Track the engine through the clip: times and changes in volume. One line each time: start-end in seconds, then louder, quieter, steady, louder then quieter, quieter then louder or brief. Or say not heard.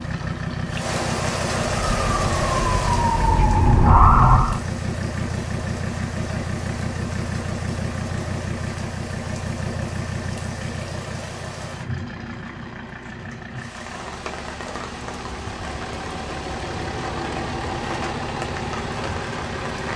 0.0-19.9 quieter then louder.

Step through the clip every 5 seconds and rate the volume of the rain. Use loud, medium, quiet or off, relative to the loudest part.
loud, medium, medium, medium.